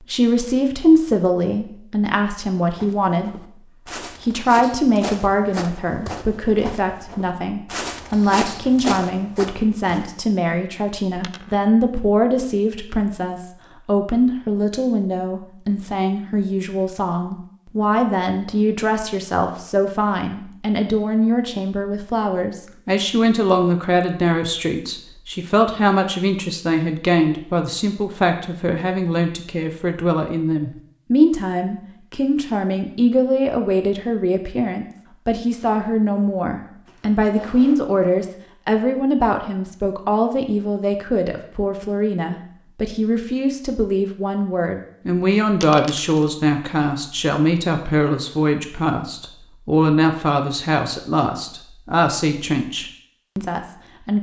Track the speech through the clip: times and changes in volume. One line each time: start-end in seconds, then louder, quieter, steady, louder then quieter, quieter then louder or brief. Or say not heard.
0.0-54.1 steady.